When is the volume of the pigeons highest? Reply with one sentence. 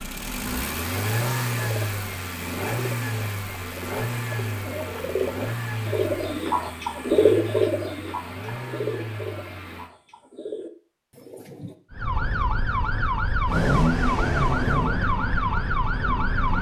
The volume of the pigeons peaks at 7 seconds.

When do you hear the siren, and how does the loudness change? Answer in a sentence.
You can hear the siren from 11.9 to 16.5 s, at a steady volume.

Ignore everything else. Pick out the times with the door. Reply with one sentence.
You can't hear the door here.